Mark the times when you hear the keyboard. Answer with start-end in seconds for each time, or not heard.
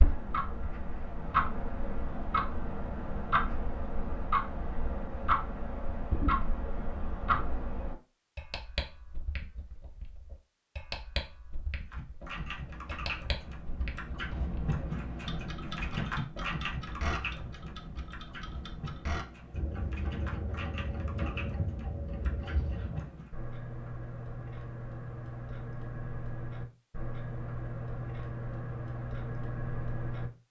11.8-23.4.